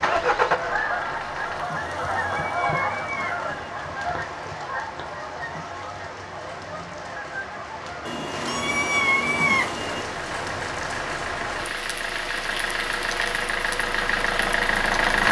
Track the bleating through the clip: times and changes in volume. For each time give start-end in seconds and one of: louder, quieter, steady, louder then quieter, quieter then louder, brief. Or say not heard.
not heard.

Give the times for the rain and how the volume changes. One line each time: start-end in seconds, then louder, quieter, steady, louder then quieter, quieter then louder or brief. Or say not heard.
0.0-15.2 louder.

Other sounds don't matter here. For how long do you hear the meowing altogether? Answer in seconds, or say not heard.
4 s.